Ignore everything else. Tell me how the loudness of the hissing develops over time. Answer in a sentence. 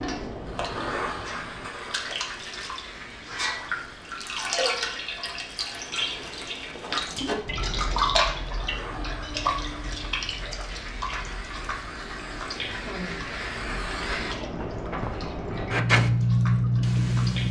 The loudness of the hissing goes down, then up.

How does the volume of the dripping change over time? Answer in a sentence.
The volume of the dripping goes up, then down.